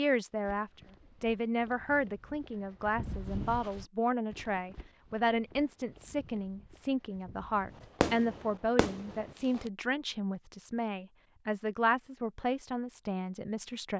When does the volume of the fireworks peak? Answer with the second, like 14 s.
8 s.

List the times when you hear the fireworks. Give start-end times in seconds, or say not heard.
8.0-9.7.